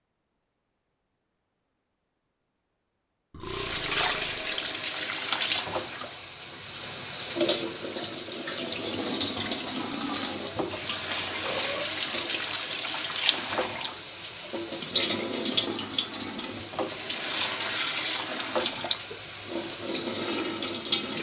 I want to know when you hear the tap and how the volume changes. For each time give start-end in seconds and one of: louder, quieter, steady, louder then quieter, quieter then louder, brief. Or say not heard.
3.4-21.1 steady.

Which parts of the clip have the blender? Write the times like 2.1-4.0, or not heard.
not heard.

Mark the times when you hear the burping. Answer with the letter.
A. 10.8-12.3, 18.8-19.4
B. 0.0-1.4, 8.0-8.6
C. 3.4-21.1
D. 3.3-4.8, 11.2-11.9
D.